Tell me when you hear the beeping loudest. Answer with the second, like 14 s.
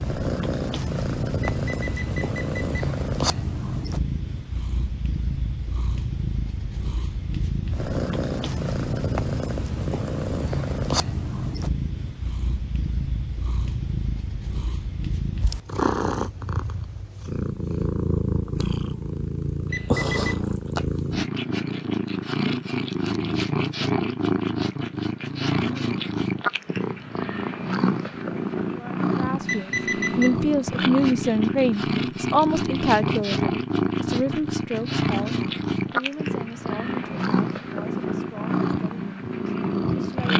30 s.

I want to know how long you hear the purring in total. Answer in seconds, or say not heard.
40 s.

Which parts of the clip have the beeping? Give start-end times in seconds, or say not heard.
1.4-2.9, 19.7-20.4, 29.4-30.4.